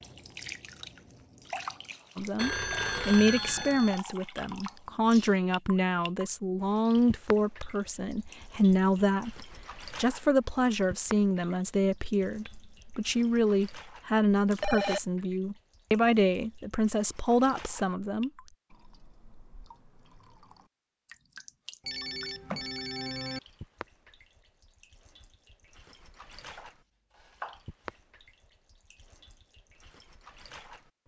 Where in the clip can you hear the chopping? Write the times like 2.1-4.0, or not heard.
26.4-27.9.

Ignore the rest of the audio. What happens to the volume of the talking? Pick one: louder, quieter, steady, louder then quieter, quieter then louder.
steady.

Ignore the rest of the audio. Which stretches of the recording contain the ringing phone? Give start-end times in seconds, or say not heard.
2.4-4.0, 14.5-15.0, 21.9-23.4.